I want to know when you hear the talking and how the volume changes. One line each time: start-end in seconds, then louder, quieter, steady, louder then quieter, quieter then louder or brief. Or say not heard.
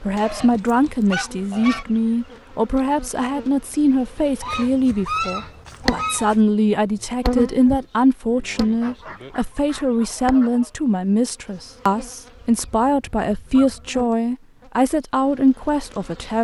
0.0-16.4 steady.